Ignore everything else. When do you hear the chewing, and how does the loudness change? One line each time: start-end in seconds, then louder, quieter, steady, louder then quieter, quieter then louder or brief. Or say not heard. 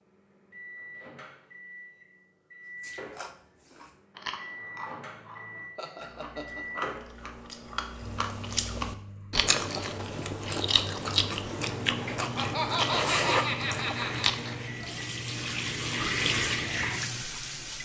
2.8-14.6 louder.